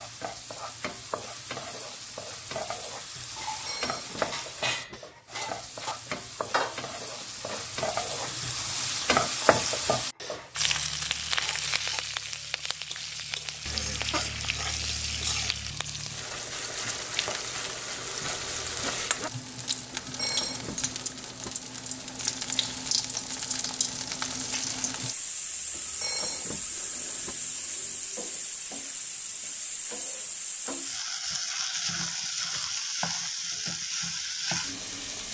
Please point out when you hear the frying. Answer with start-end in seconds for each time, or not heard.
0.0-35.2.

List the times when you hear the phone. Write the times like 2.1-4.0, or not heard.
3.5-5.0, 19.9-21.5, 25.8-27.4.